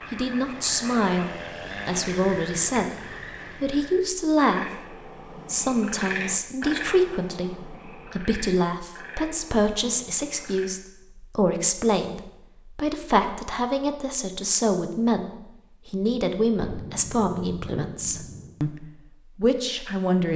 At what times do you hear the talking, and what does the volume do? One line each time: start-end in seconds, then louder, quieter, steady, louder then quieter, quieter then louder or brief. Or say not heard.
0.1-20.3 steady.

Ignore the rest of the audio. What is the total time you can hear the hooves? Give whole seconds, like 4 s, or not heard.
not heard.